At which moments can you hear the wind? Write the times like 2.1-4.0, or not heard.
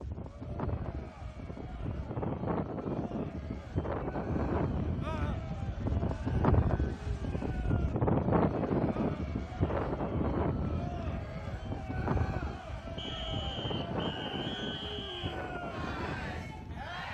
0.0-17.0.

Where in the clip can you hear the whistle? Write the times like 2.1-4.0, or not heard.
12.9-15.4.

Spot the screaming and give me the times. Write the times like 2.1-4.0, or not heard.
5.0-5.4, 8.9-9.3.